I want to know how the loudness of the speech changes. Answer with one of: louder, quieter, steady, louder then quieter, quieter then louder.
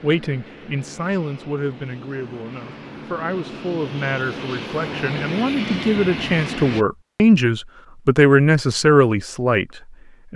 louder.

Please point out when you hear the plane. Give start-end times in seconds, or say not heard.
0.0-6.8.